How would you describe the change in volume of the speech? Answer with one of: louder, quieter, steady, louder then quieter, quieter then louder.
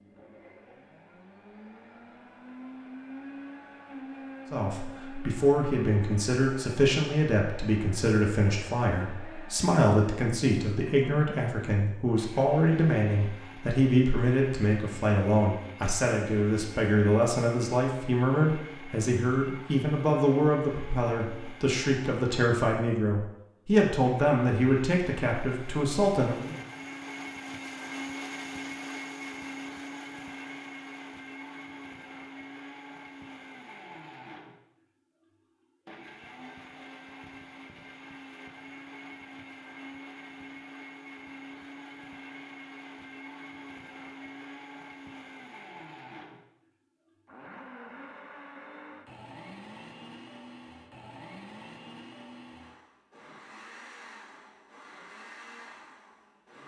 steady.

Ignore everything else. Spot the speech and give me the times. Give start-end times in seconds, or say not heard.
4.5-26.6.